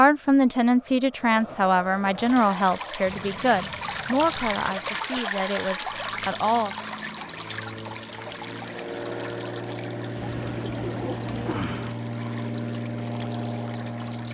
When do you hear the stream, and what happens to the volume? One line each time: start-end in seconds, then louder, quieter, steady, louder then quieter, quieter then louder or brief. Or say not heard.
2.2-14.2 quieter.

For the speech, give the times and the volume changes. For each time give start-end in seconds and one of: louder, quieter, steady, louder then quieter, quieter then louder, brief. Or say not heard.
0.0-6.7 quieter.